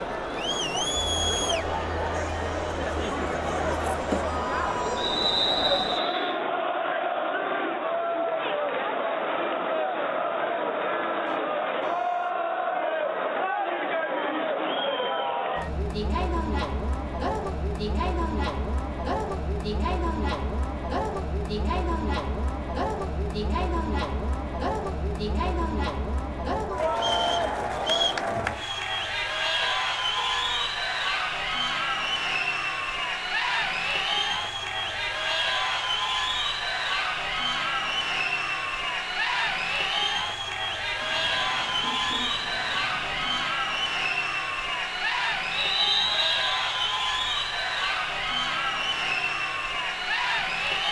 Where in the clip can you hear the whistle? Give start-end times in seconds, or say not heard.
5.0-6.4, 26.9-28.2, 45.5-46.8.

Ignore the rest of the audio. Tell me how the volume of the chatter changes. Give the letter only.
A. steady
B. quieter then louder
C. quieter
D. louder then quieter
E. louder
A.